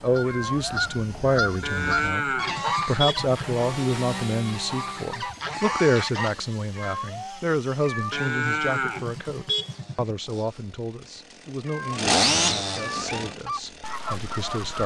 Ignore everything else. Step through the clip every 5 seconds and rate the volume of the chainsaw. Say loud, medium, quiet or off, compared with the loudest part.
medium, quiet, loud.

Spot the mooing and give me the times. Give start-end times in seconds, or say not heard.
1.6-3.5, 8.1-10.2.